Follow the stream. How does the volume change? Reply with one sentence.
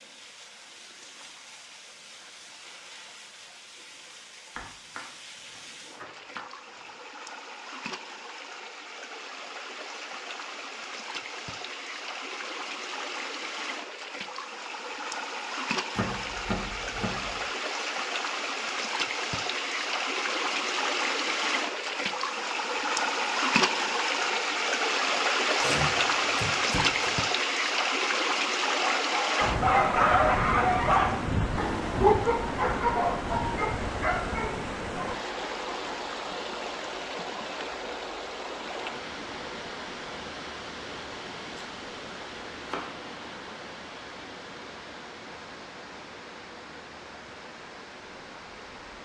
The loudness of the stream goes up, then down.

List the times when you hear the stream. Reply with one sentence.
The stream can be heard from 0.0 to 48.9 s.